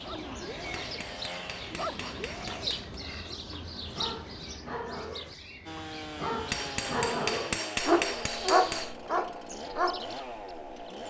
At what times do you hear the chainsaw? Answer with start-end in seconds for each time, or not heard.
0.0-1.8, 5.7-11.0.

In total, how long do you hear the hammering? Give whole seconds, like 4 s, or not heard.
5 s.